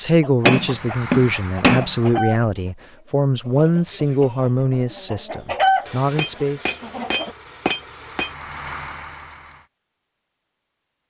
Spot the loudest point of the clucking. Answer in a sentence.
The volume of the clucking peaks at 6 seconds.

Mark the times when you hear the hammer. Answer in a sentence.
You can hear the hammer from 0.5 to 1.9 s and from 5.8 to 8.3 s.